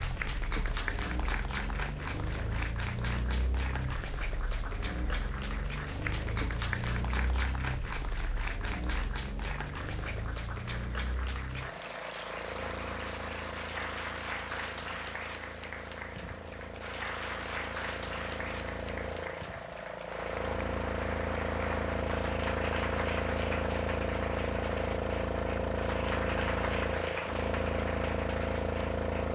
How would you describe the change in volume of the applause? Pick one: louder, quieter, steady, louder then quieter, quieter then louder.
steady.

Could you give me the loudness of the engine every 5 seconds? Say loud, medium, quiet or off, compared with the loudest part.
medium, medium, medium, medium, loud, loud.